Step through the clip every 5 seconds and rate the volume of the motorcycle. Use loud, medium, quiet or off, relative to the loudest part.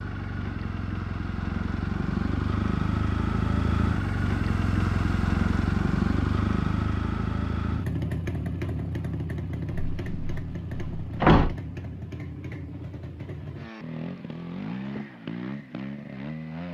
loud, loud, medium, medium.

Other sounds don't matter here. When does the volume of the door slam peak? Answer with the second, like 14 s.
11 s.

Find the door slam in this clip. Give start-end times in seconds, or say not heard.
9.7-11.6.